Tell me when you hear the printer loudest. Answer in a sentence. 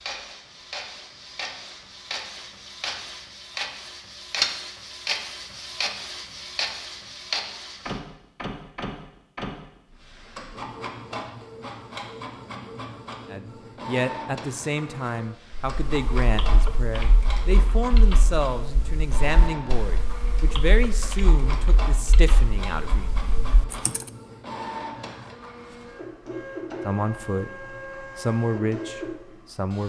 The loudest moment of the printer is at 5 seconds.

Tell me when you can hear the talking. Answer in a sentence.
You can hear the talking from 13.3 to 23.1 s and from 26.8 to 29.8 s.